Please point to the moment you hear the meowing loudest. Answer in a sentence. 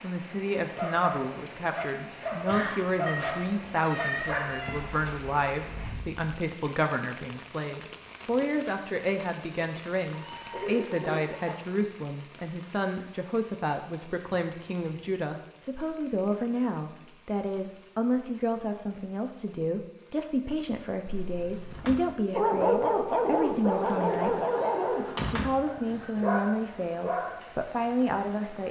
The volume of the meowing peaks at 4 seconds.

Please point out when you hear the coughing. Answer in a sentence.
The coughing can be heard from 1.9 to 2.8 s, from 10.1 to 11.6 s and from 25.9 to 26.4 s.